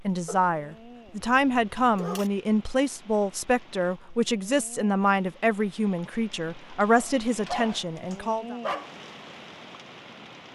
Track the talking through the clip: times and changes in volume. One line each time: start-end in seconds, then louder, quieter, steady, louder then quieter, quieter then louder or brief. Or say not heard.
0.0-8.6 steady.